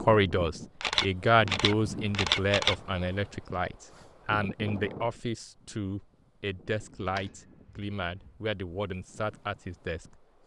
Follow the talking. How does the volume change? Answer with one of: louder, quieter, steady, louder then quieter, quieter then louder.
quieter.